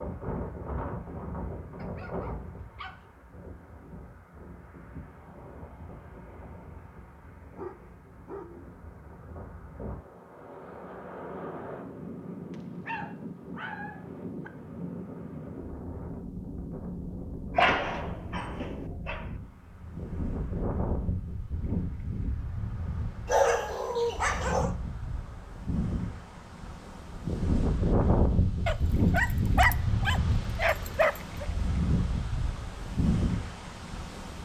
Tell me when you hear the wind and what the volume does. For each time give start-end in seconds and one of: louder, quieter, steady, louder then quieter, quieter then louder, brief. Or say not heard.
0.0-34.3 louder.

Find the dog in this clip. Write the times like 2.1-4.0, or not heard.
1.7-3.0, 7.3-8.5, 12.5-14.5, 17.6-19.2, 23.2-24.8, 28.6-31.4.